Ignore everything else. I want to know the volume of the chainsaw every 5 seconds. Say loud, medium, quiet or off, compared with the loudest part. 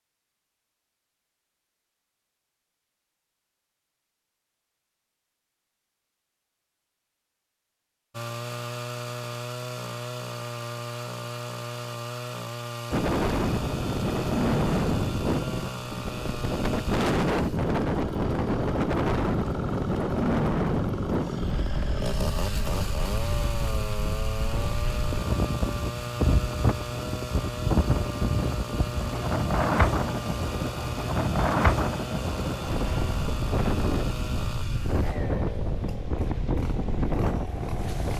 off, loud, loud, loud, loud, loud, loud, medium.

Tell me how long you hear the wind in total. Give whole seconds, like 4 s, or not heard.
25 s.